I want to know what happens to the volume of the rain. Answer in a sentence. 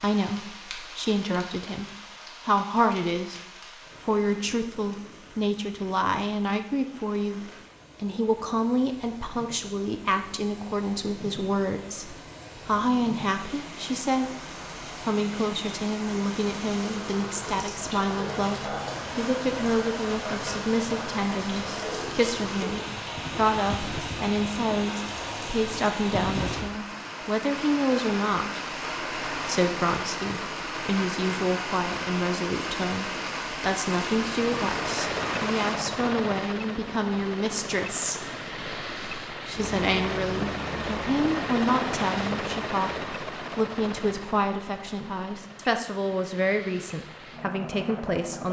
The volume of the rain goes up.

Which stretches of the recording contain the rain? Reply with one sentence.
The rain can be heard from 0.0 to 35.8 s.